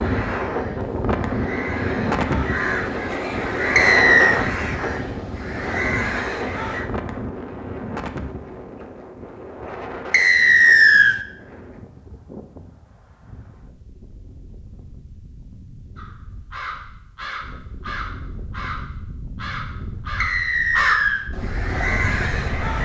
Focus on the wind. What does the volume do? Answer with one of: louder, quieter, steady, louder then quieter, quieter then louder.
quieter then louder.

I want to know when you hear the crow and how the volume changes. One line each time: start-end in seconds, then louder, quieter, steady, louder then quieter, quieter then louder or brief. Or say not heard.
0.0-6.8 louder
15.9-22.7 louder.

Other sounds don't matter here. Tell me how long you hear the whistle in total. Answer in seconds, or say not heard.
3 s.